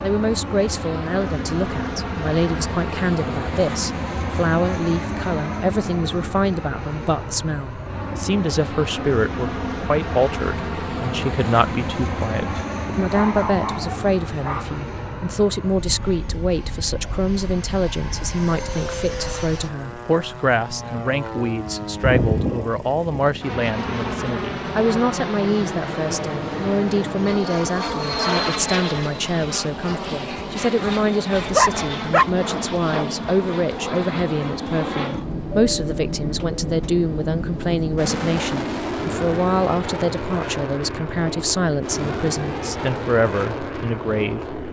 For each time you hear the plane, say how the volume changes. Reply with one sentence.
You can hear the plane from 0.0 to 44.6 s, at a steady volume.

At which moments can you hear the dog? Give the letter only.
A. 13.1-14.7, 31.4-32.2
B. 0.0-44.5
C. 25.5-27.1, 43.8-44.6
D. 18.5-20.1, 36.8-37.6
A.